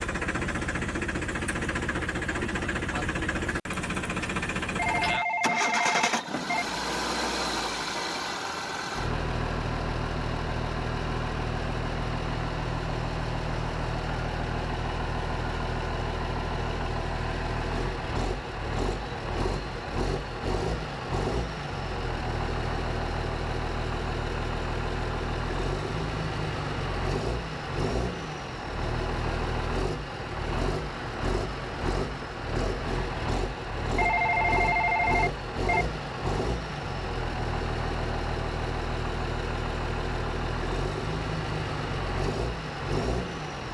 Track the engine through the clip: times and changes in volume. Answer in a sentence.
You can hear the engine from 0.0 to 43.6 s, at a steady volume.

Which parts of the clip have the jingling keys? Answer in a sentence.
You can't hear the jingling keys here.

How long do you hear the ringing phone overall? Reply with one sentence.
You can hear the ringing phone for 4 seconds altogether.